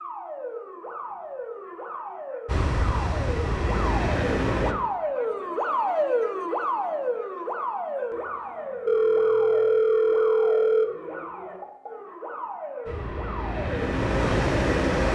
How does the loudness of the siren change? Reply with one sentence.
The loudness of the siren goes up, then down.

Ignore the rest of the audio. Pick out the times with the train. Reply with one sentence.
The train can be heard from 2.5 to 4.8 s and from 12.8 to 15.0 s.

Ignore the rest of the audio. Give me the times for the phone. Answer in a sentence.
The phone can be heard from 8.8 to 10.8 s.